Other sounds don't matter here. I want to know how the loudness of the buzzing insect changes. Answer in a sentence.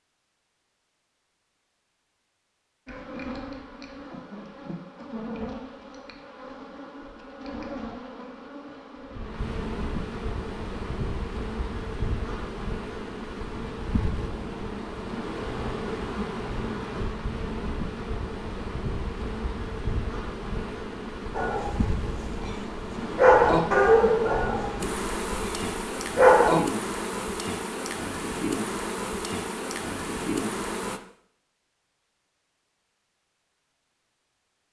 The loudness of the buzzing insect goes up.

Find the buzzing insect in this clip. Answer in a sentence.
You can hear the buzzing insect from 2.9 to 31.0 s.